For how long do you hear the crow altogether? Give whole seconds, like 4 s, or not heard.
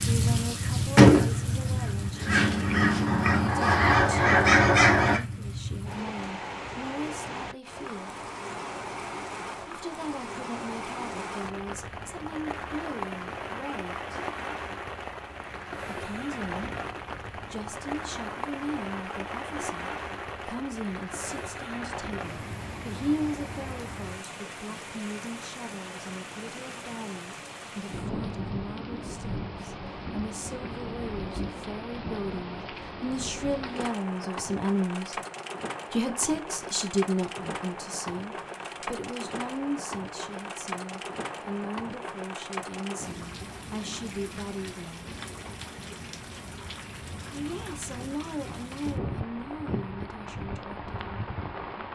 5 s.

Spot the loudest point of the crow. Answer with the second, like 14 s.
1 s.